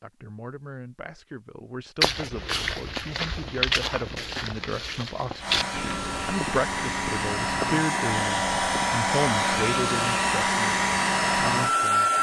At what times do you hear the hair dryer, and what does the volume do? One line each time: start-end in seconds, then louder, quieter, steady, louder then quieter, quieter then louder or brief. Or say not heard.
5.4-12.1 louder.